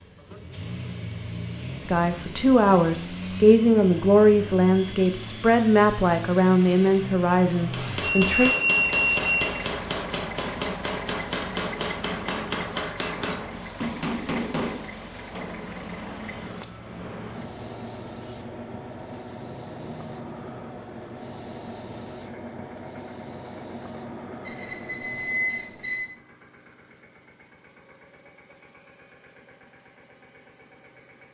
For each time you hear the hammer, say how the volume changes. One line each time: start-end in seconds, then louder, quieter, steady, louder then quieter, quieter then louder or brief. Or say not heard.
7.5-15.7 steady.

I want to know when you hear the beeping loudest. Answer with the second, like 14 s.
9 s.